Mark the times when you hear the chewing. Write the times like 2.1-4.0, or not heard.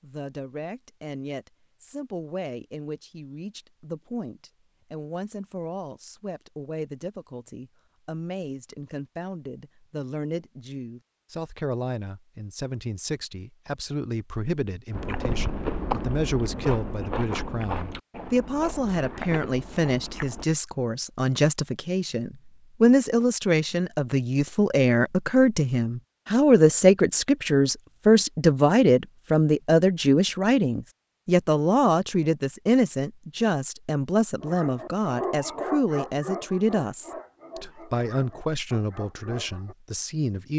14.9-20.4.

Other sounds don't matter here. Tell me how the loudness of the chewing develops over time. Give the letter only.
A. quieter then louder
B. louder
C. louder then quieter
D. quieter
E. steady
D.